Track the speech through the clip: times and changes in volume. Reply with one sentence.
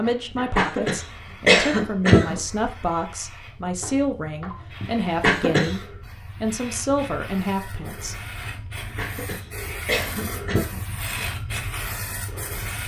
The speech can be heard from 0.0 to 8.2 s, at a steady volume.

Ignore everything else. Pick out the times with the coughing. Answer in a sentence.
The coughing can be heard from 0.6 to 2.4 s, from 5.2 to 5.8 s and from 8.9 to 11.2 s.